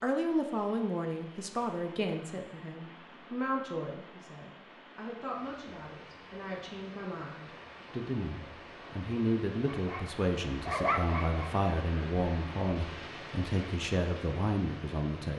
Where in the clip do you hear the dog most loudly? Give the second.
11 s.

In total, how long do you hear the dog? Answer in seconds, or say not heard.
2 s.